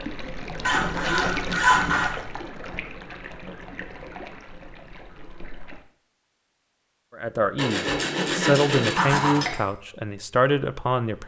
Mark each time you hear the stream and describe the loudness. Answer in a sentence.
The stream can be heard from 0.0 to 5.8 s, getting quieter.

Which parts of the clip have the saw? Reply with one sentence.
The saw can be heard from 0.6 to 2.2 s and from 7.5 to 9.6 s.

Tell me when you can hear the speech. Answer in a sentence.
The speech can be heard from 7.2 to 11.2 s.